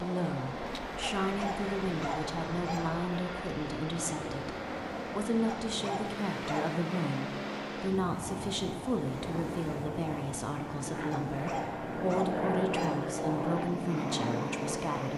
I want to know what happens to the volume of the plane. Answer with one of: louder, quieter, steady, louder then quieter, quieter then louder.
louder.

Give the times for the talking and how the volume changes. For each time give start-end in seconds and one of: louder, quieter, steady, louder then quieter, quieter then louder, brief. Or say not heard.
0.0-15.1 steady.